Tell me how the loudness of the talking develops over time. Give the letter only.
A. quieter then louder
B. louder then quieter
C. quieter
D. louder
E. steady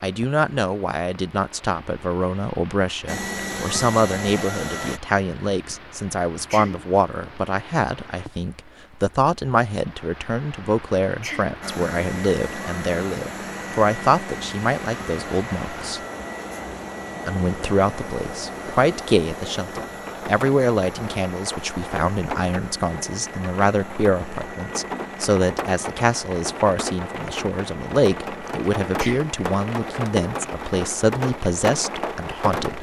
E.